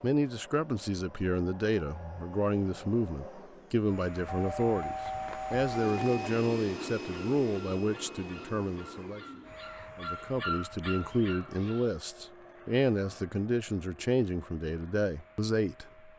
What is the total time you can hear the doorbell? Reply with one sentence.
The doorbell can be heard for 2 seconds in total.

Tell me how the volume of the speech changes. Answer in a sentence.
The loudness of the speech stays about the same.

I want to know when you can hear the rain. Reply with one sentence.
The rain can't be heard in this clip.